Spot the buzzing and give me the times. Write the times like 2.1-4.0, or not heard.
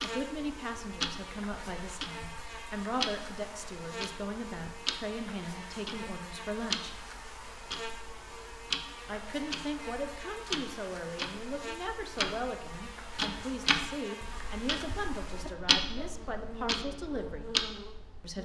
0.0-18.3.